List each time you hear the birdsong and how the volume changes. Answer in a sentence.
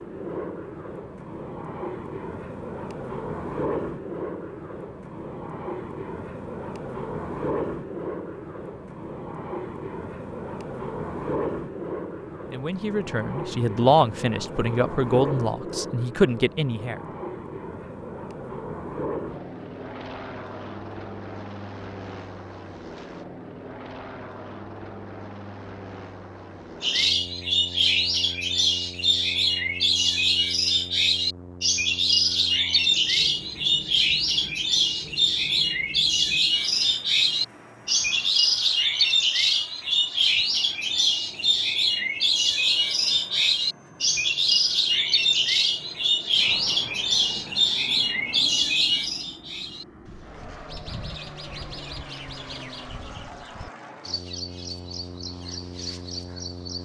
The birdsong can be heard from 26.8 to 56.8 s, getting quieter.